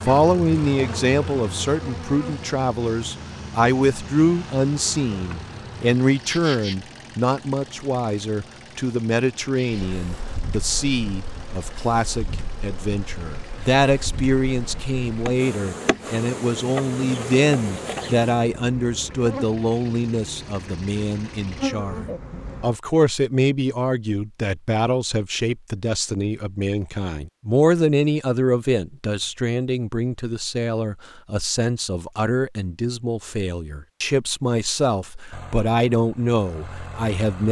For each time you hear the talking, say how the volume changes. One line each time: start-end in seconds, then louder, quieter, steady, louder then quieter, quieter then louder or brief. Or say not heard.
0.0-37.4 steady.